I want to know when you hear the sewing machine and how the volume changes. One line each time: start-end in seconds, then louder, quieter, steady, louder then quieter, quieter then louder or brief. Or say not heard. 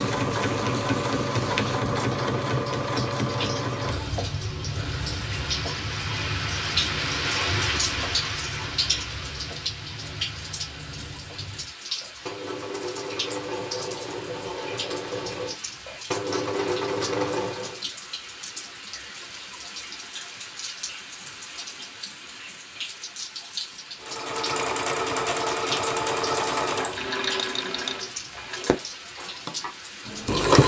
0.0-17.8 quieter then louder
24.0-30.6 quieter.